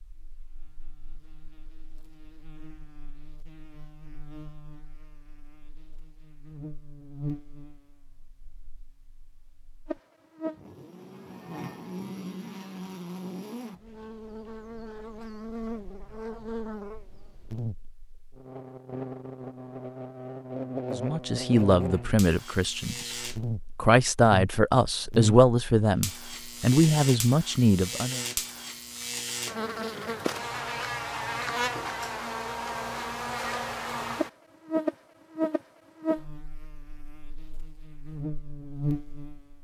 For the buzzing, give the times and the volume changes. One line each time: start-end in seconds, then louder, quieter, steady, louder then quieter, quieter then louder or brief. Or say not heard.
0.0-39.5 louder.